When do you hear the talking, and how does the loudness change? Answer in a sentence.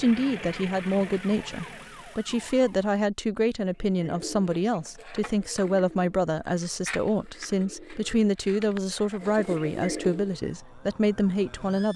The talking can be heard from 0.0 to 11.9 s, at a steady volume.